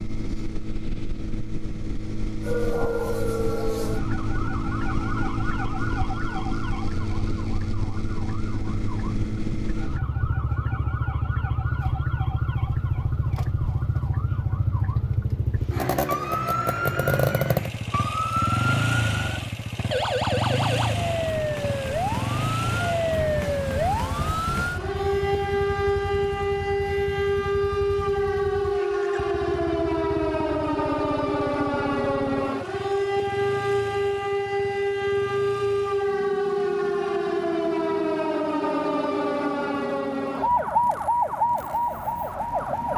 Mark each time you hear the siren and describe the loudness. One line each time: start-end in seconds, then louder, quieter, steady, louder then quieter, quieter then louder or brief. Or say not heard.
2.4-42.9 louder.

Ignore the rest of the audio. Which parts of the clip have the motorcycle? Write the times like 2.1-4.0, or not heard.
0.0-42.9.